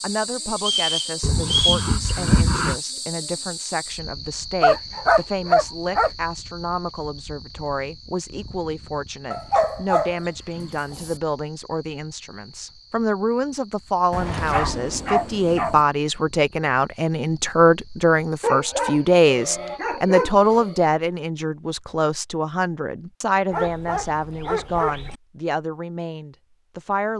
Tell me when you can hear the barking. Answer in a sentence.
You can hear the barking from 1.2 to 2.8 s, from 4.6 to 6.1 s, from 9.3 to 11.2 s, from 14.1 to 15.8 s, from 18.4 to 20.8 s and from 23.5 to 25.1 s.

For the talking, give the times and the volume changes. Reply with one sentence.
The talking can be heard from 0.0 to 27.1 s, getting louder then quieter.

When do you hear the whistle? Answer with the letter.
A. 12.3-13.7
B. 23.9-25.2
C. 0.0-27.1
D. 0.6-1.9
D.